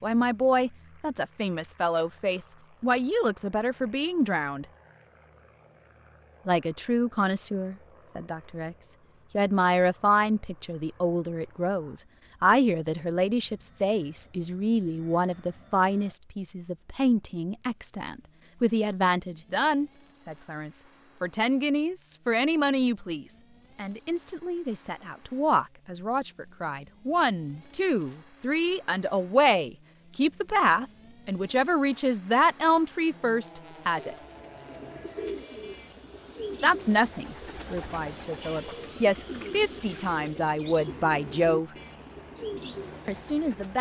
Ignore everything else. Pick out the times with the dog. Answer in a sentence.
You can't hear the dog here.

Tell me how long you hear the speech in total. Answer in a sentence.
The speech can be heard for 38 seconds in total.